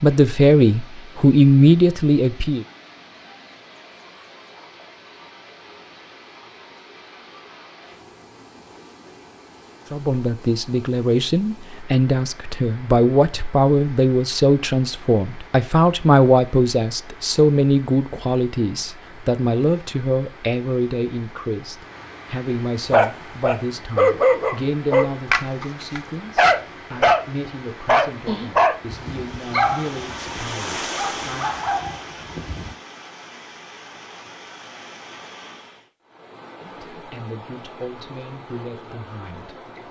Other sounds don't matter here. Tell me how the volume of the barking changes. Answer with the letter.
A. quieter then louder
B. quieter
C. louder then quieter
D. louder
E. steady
B.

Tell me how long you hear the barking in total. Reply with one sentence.
You can hear the barking for 9 seconds altogether.